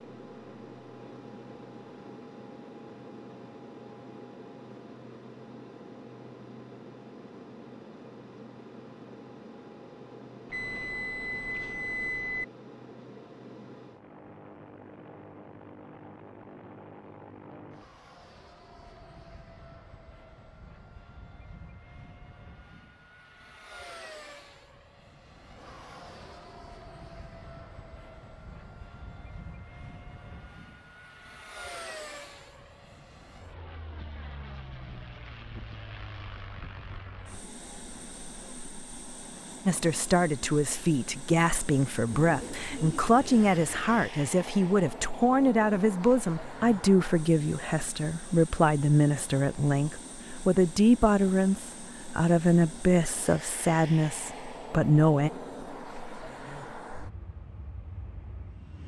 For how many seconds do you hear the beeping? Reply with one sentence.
The beeping can be heard for 2 seconds in total.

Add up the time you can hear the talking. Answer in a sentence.
You can hear the talking for 16 seconds altogether.